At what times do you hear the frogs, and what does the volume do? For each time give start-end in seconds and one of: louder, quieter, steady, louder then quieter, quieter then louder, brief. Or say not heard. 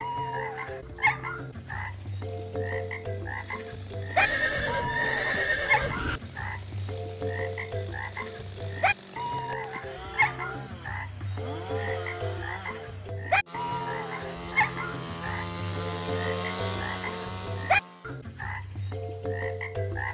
0.0-20.0 steady.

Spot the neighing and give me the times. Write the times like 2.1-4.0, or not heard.
4.2-6.2.